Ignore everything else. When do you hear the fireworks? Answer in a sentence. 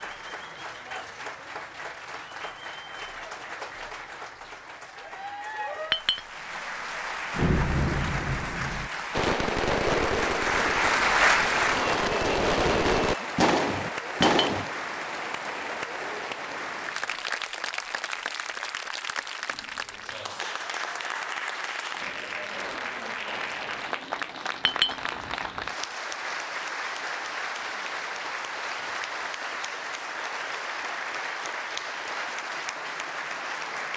The fireworks can be heard from 7.3 to 14.7 s.